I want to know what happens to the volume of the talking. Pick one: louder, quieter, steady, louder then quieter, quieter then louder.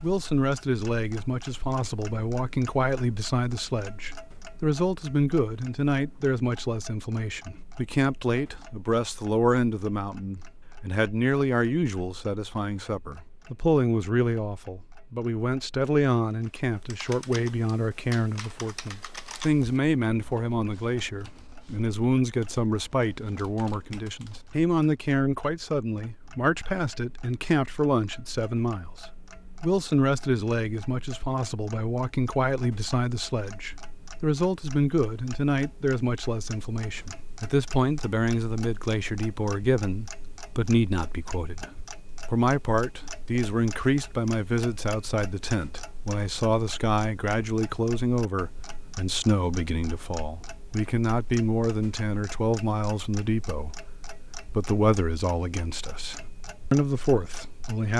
steady.